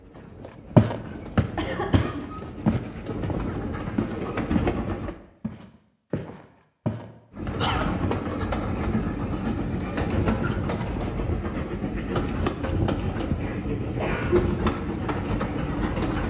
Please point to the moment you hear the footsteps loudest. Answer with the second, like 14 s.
1 s.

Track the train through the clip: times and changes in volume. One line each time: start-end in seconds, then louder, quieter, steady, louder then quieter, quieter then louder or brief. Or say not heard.
0.0-5.2 louder
7.3-16.2 steady.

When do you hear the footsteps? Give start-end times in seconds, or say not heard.
0.8-4.8, 5.4-8.2.